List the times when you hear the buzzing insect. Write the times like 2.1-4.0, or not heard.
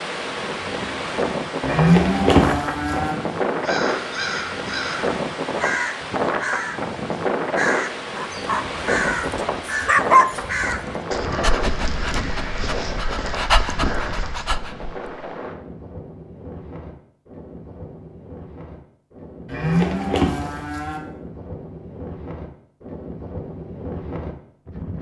not heard.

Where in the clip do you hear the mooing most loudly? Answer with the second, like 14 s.
2 s.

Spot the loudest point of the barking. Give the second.
10 s.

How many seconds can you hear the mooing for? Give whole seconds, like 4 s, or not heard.
3 s.